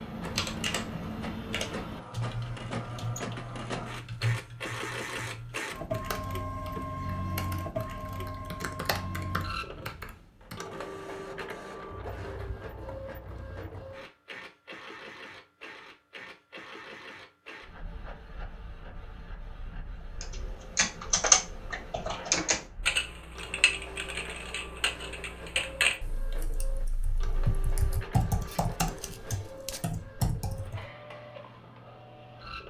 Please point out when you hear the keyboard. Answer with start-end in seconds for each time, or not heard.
0.0-10.6, 20.2-30.9.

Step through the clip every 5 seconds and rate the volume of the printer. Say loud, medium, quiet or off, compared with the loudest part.
loud, loud, medium, medium, medium, medium, medium.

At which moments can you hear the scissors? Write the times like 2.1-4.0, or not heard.
11.9-13.9, 28.4-29.9.